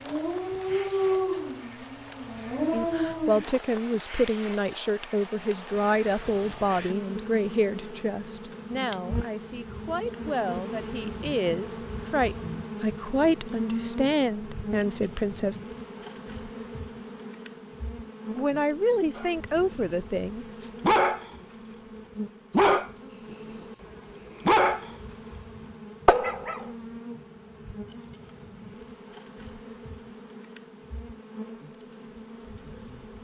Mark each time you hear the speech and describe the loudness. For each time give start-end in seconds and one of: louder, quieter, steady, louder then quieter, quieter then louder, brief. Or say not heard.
2.7-15.6 quieter then louder
18.4-20.7 brief.